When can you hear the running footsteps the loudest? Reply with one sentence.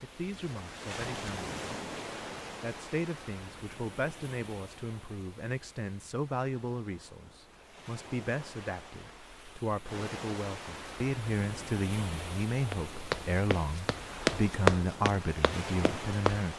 The loudest moment of the running footsteps is at 15 seconds.